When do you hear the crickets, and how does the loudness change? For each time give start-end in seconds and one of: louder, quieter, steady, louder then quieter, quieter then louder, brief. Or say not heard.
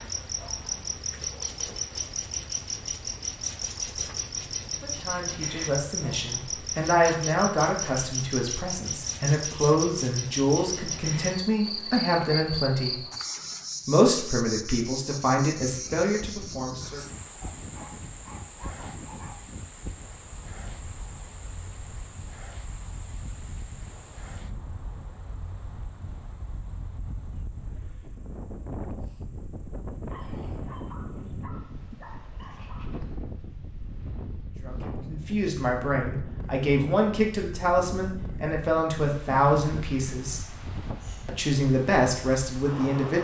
0.0-31.5 quieter.